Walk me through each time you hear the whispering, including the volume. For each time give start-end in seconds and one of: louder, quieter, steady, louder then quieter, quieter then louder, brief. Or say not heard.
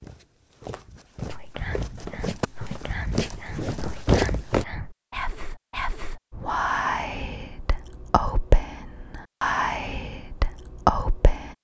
1.2-11.5 louder.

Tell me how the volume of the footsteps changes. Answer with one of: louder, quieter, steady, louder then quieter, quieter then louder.
louder.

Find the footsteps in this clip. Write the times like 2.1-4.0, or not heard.
0.0-4.7.